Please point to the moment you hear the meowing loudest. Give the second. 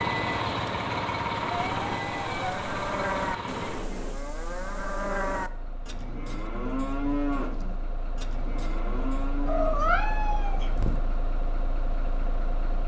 10 s.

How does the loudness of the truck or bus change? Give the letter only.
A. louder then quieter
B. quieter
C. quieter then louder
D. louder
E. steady
C.